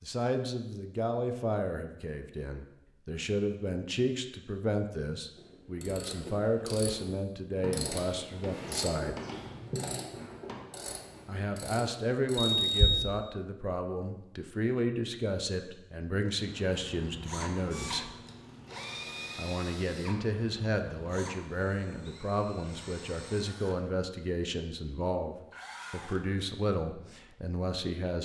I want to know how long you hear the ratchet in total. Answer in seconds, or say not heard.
8 s.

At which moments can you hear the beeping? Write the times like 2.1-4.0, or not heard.
12.4-13.1.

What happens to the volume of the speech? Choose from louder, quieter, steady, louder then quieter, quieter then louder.
steady.